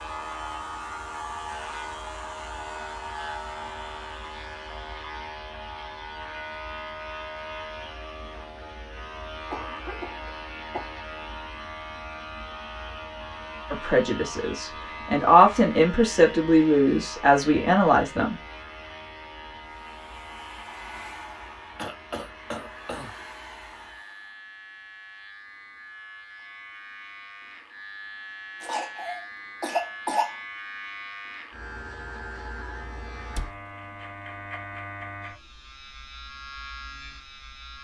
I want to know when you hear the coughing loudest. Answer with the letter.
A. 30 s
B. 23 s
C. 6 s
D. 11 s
A.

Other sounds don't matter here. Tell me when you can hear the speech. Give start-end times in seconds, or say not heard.
13.7-18.4.